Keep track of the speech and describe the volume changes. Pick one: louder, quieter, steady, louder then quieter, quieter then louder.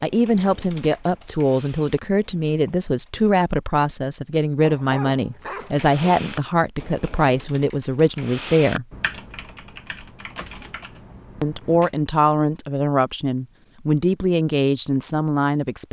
steady.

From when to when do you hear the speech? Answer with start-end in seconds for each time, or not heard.
0.0-8.8, 11.4-15.8.